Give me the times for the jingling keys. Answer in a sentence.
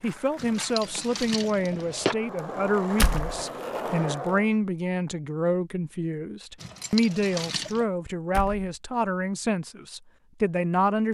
You can hear the jingling keys from 0.3 to 2.1 s and from 6.5 to 7.8 s.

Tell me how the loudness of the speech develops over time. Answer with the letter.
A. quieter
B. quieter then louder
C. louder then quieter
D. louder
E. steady
E.